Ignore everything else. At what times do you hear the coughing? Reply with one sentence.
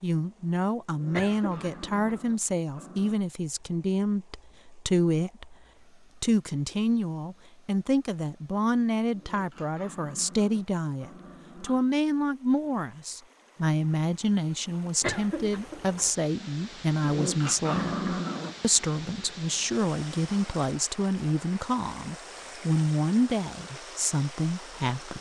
The coughing can be heard from 1.1 to 2.2 s and from 15.0 to 16.1 s.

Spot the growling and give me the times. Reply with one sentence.
The growling can be heard from 0.8 to 3.2 s, from 9.1 to 11.9 s and from 17.0 to 18.6 s.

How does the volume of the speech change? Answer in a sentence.
The volume of the speech stays about the same.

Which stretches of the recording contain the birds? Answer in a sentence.
You can't hear the birds here.